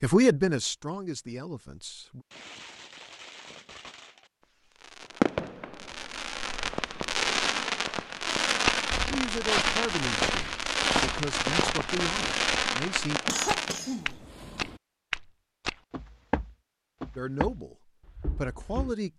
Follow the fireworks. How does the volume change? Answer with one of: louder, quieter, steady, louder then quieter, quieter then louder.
louder.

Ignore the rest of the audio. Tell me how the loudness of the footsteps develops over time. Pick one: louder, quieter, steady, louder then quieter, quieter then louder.
quieter.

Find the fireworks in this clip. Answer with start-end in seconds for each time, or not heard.
2.3-13.8.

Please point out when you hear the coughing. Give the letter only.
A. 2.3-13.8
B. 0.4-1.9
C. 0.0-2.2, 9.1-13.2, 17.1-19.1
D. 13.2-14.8
D.